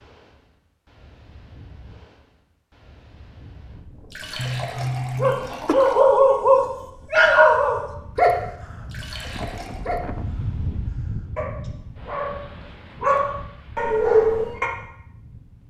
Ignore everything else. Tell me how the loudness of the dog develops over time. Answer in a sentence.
The loudness of the dog goes down, then up.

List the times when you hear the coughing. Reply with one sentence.
The coughing can be heard from 4.3 to 5.8 s.